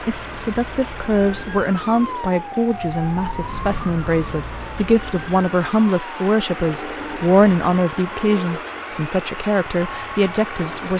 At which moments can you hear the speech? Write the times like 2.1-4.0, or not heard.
0.1-10.9.